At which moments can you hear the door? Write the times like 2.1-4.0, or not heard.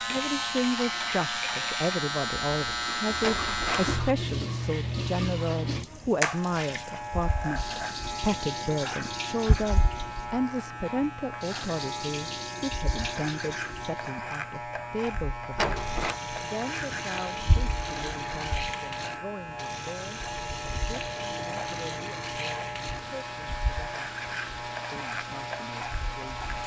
3.2-4.0, 15.6-16.2.